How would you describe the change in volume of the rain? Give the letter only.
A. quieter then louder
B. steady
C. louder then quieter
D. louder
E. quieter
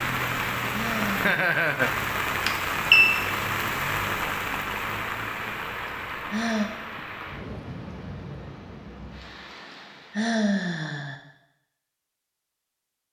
E.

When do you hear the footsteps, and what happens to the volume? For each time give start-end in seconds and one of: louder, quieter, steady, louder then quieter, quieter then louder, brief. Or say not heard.
not heard.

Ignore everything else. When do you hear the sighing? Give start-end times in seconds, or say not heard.
0.7-1.4, 6.3-6.7, 10.1-11.2.